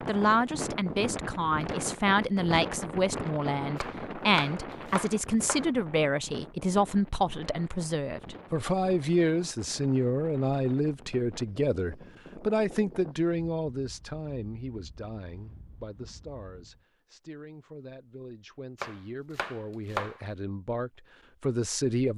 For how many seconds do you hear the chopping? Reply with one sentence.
You can hear the chopping for 3 seconds altogether.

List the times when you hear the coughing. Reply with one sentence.
The coughing can't be heard in this clip.